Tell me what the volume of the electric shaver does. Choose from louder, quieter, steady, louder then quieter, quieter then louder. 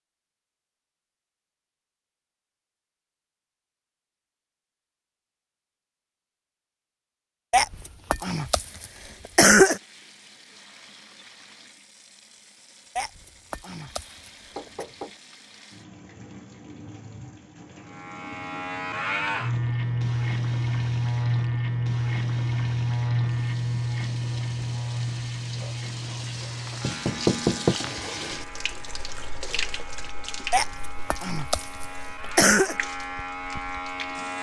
quieter then louder.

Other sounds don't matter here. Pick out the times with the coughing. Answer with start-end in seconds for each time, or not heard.
7.5-9.8, 12.9-14.8, 30.5-32.8.